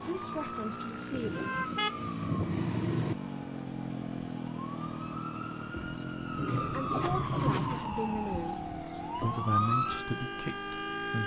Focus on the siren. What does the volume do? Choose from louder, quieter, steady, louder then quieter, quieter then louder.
quieter then louder.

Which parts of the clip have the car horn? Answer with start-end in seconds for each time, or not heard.
1.1-3.1, 6.3-7.9.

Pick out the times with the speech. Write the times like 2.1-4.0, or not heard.
0.0-1.6, 6.7-11.2.